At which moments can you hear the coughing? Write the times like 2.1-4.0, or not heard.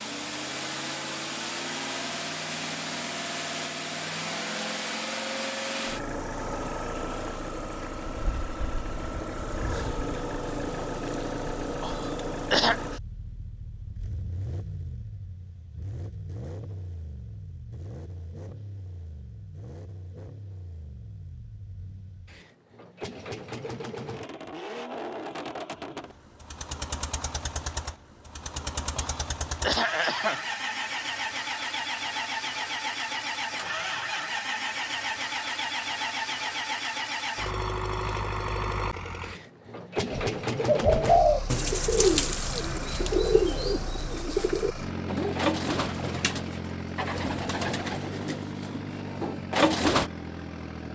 11.8-12.8, 28.9-30.4.